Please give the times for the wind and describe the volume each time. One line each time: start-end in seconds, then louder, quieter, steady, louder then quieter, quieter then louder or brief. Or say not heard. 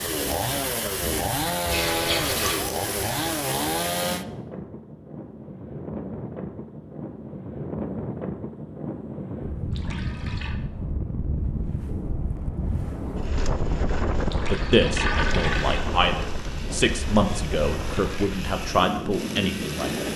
0.0-20.1 louder.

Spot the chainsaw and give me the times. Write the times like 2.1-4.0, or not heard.
0.0-4.2, 15.4-20.1.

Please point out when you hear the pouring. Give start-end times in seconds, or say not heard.
1.6-2.6, 9.7-10.6, 14.2-15.8.